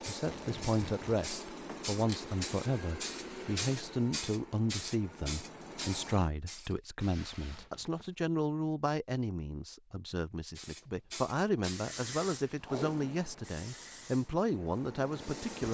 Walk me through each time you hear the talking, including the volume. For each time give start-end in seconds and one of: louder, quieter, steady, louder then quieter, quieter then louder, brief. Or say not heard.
0.1-15.6 steady.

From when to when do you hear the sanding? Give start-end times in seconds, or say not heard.
not heard.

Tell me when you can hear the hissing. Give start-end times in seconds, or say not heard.
0.0-6.8, 10.6-15.6.